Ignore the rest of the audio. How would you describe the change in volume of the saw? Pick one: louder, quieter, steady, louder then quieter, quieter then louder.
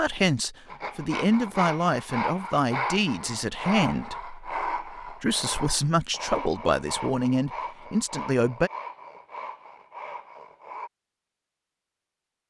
quieter.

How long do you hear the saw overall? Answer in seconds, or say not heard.
10 s.